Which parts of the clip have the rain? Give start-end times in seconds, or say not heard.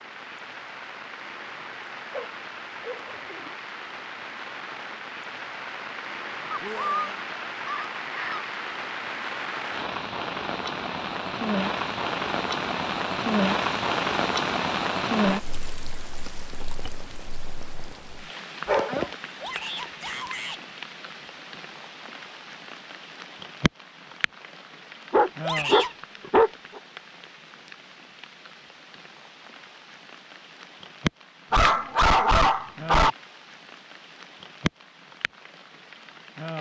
0.0-36.5.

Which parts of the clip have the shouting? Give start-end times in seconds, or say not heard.
6.6-7.2, 19.4-20.6, 25.4-25.9.